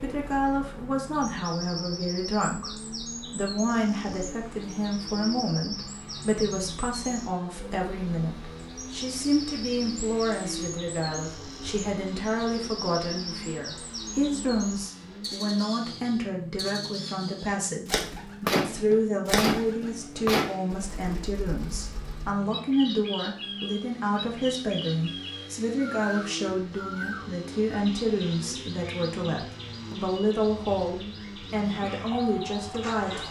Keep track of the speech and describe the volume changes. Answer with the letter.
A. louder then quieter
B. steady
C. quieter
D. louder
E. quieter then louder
B.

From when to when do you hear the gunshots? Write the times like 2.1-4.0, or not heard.
18.0-20.8.